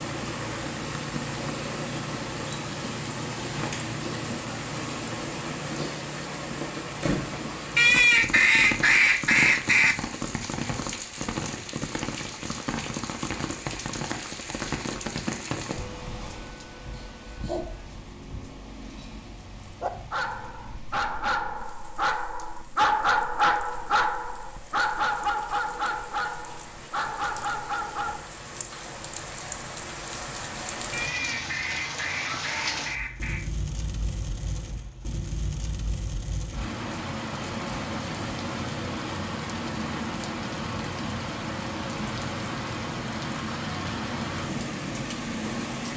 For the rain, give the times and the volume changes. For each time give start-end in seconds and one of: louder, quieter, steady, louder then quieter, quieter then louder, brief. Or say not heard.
0.0-45.9 quieter then louder.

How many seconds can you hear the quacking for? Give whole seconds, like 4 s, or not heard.
5 s.